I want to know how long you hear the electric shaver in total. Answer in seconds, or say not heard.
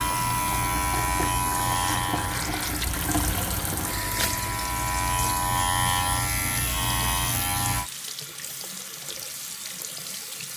8 s.